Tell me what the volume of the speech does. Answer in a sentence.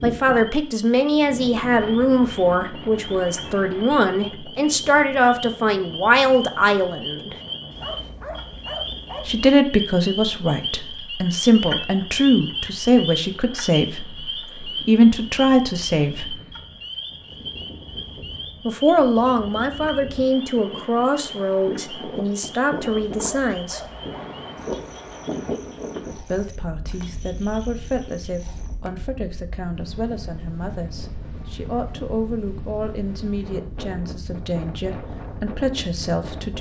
The volume of the speech goes down.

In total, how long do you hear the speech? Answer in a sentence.
The speech can be heard for 30 seconds in total.